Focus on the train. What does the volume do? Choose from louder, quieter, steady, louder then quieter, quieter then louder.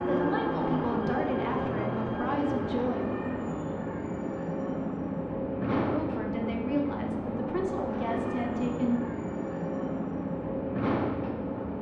steady.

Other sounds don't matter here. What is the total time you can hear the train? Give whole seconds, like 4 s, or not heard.
12 s.